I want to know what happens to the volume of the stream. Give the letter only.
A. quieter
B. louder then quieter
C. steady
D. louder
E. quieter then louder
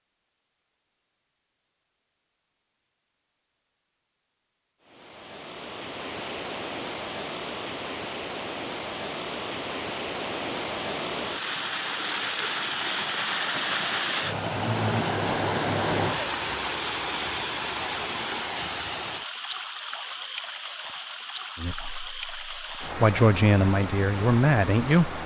B.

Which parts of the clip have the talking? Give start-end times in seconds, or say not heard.
21.6-25.2.